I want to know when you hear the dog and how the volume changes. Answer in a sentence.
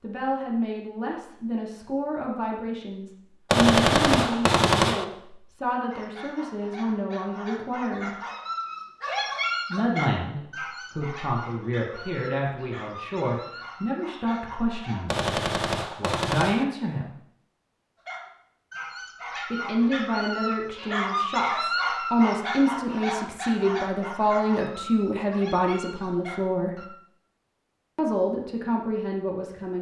The dog can be heard from 5.9 to 15.3 s, getting louder then quieter; and from 18.1 to 26.9 s, getting louder then quieter.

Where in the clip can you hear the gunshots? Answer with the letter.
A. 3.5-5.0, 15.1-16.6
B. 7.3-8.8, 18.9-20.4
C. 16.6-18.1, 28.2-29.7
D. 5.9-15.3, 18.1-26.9
A.